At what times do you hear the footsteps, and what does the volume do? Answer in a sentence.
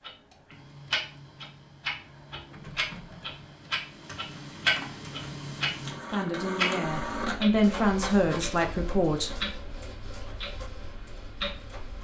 The footsteps can't be heard in this clip.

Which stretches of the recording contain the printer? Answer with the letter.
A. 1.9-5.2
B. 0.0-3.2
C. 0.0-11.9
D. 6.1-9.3
C.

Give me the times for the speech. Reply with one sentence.
You can hear the speech from 6.1 to 9.3 s.